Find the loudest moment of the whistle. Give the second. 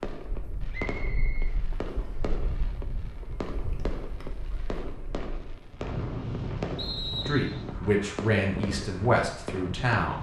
7 s.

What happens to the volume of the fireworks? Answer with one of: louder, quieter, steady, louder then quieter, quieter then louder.
steady.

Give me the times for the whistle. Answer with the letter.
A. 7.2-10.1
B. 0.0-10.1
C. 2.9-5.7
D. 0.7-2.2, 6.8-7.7
D.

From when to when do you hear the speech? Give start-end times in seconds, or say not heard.
7.2-10.1.